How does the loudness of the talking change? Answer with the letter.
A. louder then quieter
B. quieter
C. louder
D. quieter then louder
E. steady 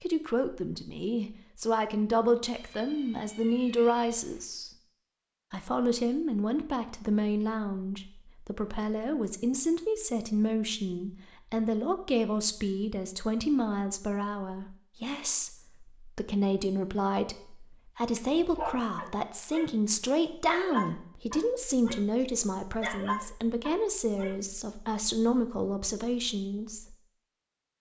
E.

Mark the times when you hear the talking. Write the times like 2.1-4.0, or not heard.
0.0-4.7, 5.5-26.9.